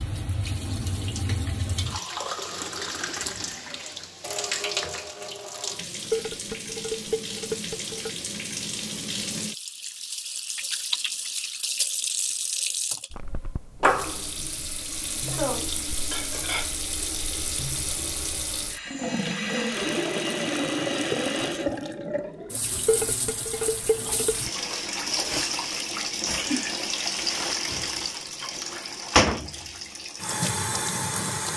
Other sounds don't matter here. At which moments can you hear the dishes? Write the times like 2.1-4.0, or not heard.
6.1-8.1, 15.3-16.8, 22.9-24.4.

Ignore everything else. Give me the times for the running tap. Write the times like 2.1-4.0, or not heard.
0.0-31.5.